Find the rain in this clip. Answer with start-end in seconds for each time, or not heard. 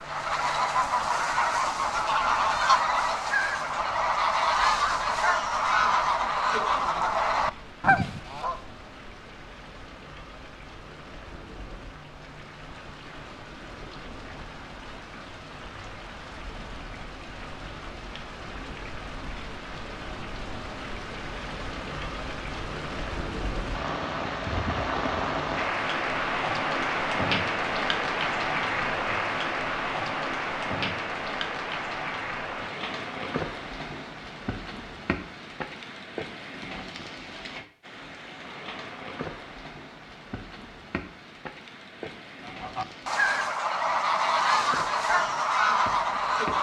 0.0-46.5.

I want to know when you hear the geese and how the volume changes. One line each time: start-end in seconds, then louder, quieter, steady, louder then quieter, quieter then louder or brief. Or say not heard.
0.0-8.6 steady
42.5-46.5 steady.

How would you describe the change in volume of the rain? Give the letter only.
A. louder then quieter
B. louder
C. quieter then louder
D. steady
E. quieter
A.